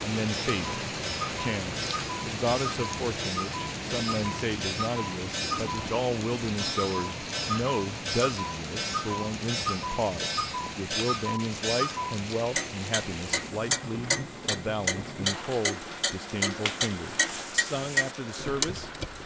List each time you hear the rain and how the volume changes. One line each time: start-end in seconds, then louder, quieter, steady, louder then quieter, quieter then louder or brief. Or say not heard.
0.0-19.2 quieter.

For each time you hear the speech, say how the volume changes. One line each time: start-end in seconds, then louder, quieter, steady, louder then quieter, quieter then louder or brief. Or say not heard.
0.0-18.9 steady.